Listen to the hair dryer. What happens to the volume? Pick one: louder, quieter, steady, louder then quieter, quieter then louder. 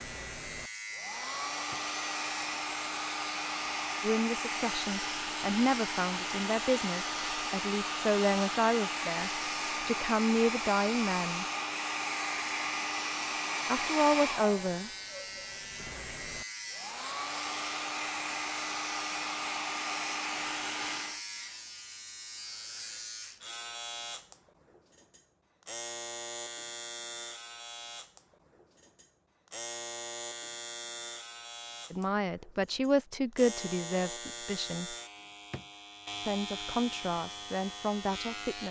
steady.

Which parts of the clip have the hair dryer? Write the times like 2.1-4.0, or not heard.
0.0-21.2.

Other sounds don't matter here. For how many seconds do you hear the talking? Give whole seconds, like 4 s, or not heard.
14 s.